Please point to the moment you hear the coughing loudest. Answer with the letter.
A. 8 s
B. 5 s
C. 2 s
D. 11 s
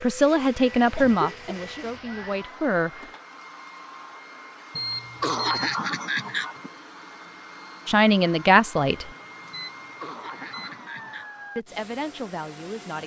B.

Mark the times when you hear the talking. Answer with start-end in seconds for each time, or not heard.
0.0-2.9, 7.8-9.1, 11.6-13.0.